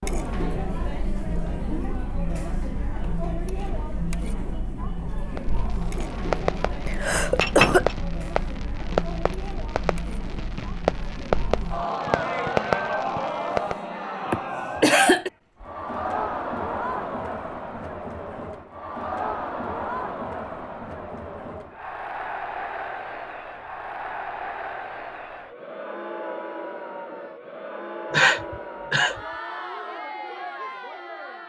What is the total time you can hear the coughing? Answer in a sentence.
You can hear the coughing for 3 seconds altogether.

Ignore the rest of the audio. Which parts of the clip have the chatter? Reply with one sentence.
You can hear the chatter from 0.0 to 31.4 s.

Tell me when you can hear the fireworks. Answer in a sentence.
You can hear the fireworks from 5.3 to 13.8 s.